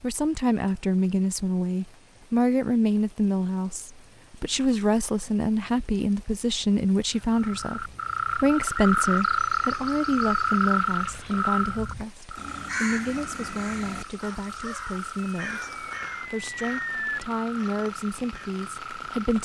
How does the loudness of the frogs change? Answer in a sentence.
The loudness of the frogs goes down.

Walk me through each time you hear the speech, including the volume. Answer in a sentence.
The speech can be heard from 0.0 to 19.4 s, getting quieter.